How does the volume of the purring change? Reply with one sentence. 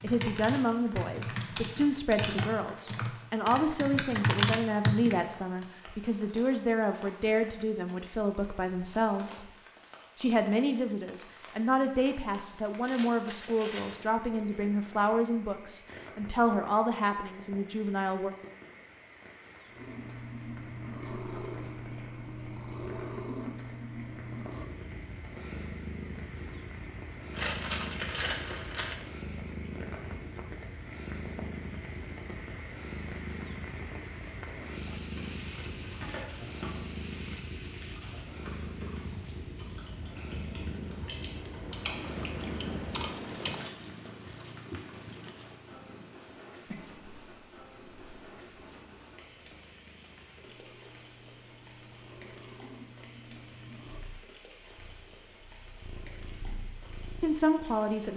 The volume of the purring goes down.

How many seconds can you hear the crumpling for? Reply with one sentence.
You can hear the crumpling for 5 seconds altogether.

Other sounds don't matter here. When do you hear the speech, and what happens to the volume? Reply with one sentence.
The speech can be heard from 0.0 to 9.5 s, at a steady volume; from 10.2 to 18.3 s, at a steady volume; and briefly from 57.2 to 58.1 s.